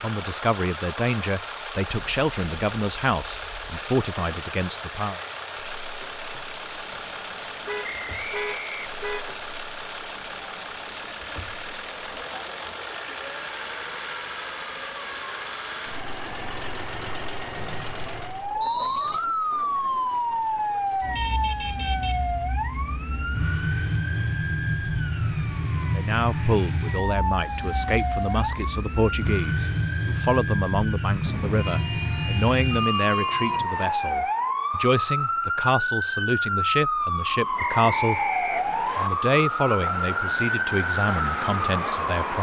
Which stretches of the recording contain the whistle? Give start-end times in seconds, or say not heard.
7.8-9.3, 17.6-19.2, 37.5-39.1.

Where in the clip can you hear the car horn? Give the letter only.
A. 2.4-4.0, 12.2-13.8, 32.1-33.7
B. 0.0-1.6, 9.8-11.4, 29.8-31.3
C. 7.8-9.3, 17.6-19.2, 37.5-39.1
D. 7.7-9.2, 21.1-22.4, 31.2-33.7
D.